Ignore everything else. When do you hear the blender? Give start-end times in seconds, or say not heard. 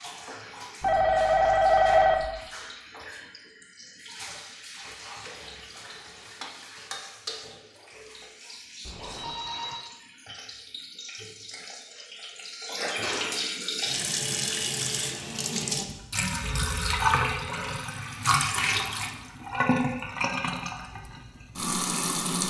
not heard.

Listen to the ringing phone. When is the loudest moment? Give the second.
2 s.